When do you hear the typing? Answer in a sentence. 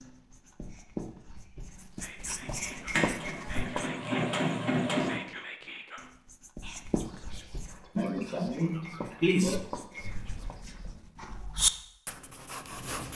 The typing can't be heard in this clip.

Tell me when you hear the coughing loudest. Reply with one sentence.
The volume of the coughing peaks at 9 seconds.